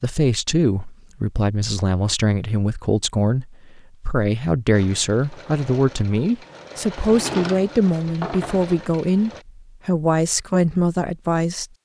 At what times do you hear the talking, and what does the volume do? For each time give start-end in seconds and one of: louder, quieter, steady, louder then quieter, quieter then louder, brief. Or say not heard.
0.0-11.7 steady.